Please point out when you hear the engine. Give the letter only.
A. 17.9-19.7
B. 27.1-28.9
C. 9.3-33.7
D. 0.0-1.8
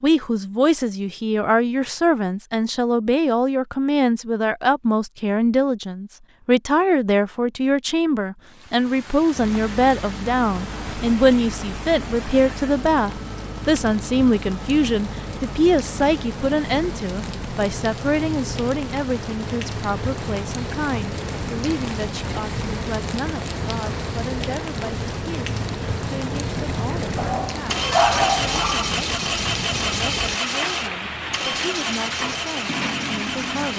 C.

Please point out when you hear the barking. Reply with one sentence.
You can hear the barking from 27.1 to 28.9 s.